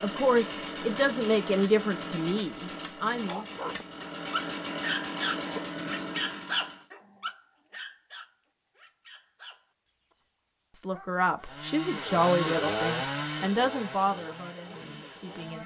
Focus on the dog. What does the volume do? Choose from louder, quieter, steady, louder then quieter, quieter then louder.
quieter.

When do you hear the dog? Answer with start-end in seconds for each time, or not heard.
3.2-11.6.